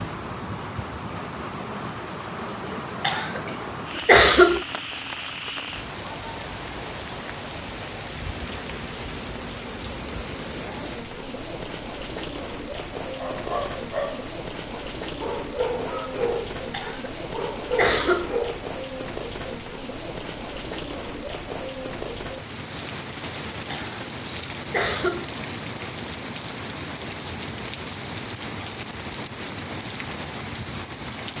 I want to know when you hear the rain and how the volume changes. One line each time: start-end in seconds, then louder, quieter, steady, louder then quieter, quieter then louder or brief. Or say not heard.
0.0-31.3 steady.